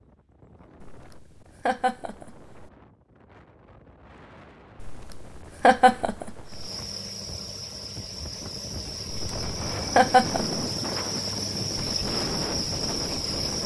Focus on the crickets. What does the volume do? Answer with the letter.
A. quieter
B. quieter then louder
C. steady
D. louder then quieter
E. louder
E.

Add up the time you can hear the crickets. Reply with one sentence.
The crickets can be heard for 7 seconds in total.